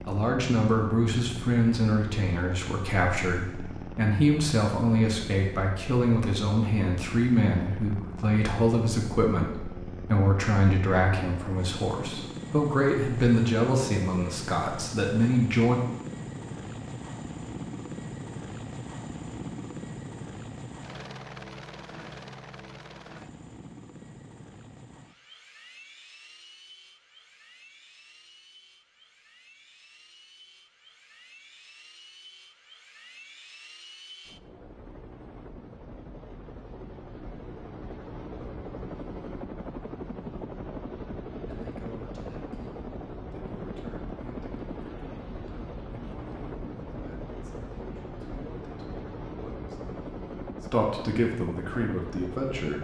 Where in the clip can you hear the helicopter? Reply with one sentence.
The helicopter can be heard from 0.0 to 52.8 s.